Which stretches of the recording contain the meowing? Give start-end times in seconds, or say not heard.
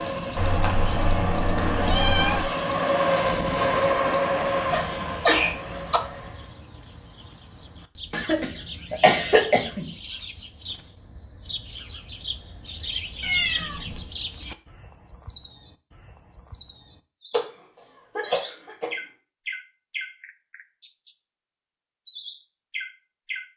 0.3-2.5, 13.2-14.1.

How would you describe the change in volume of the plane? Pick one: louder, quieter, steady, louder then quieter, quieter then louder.
louder then quieter.